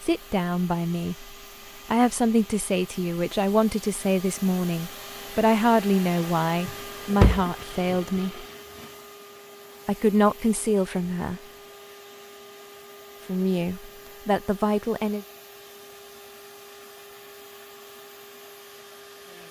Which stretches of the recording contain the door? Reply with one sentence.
You can hear the door from 6.7 to 8.0 s.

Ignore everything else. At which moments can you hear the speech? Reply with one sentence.
The speech can be heard from 0.0 to 8.4 s, from 9.8 to 11.4 s and from 13.2 to 15.2 s.